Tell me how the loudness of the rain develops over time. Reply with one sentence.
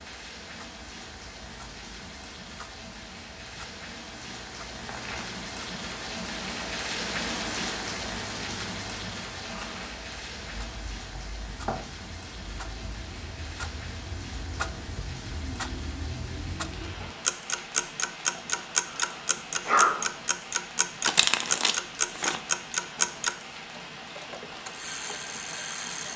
The loudness of the rain goes up, then down.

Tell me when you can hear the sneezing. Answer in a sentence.
You can hear the sneezing from 18.9 to 19.9 s.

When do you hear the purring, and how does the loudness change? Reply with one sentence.
The purring can't be heard in this clip.